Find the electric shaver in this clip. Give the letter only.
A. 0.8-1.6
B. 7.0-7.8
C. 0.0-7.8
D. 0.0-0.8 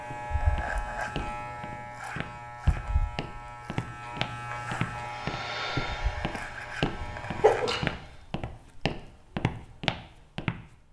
C.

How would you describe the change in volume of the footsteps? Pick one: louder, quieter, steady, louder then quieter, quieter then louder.
louder.